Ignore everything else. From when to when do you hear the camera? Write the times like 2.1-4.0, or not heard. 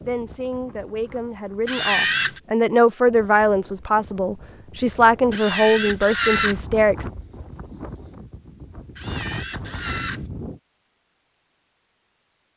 1.6-2.4, 5.3-6.5, 8.9-10.2.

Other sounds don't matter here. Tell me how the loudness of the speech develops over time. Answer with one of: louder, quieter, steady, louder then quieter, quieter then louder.
louder.